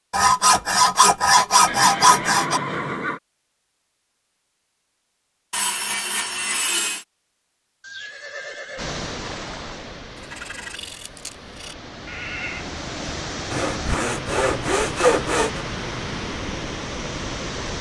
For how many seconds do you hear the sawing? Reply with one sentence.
You can hear the sawing for 8 seconds altogether.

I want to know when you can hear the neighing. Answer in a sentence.
The neighing can be heard from 1.6 to 3.2 s, from 7.8 to 9.8 s and from 12.1 to 12.7 s.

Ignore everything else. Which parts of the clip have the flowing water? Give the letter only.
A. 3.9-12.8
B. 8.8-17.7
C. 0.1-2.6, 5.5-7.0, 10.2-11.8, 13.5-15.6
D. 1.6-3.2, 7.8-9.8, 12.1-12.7
B.